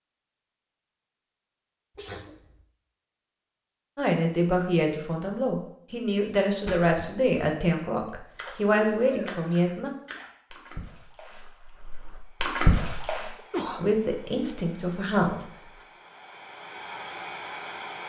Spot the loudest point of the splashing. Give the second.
13 s.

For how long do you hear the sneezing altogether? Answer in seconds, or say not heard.
2 s.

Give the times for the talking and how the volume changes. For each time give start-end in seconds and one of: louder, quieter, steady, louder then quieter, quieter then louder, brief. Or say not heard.
4.0-9.9 steady
13.8-15.5 brief.